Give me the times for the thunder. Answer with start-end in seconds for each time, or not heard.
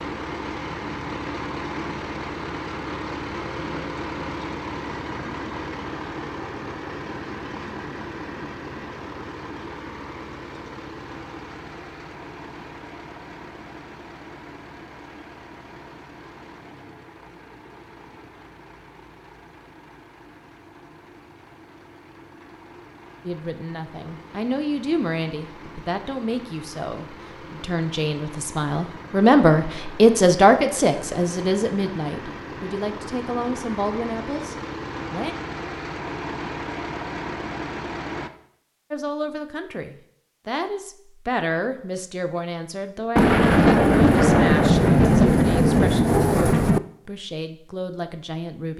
43.1-46.8.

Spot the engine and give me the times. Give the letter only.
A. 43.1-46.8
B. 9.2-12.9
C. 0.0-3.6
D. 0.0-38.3
D.